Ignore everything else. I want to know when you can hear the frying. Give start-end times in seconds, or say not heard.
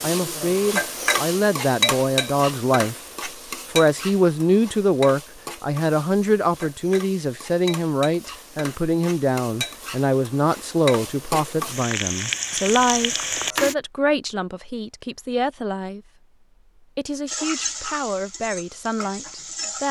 0.0-13.8, 17.2-19.8.